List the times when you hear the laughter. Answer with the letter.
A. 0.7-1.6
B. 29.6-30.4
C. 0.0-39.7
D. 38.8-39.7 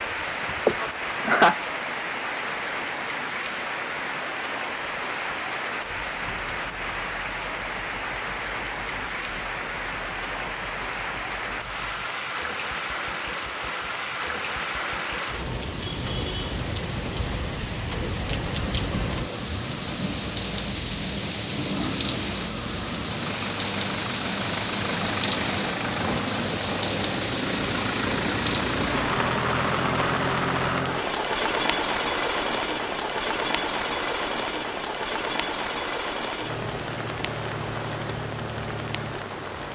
A.